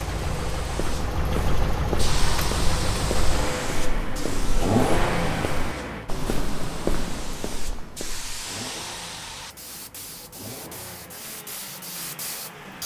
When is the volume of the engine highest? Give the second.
5 s.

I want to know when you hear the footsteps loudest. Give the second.
7 s.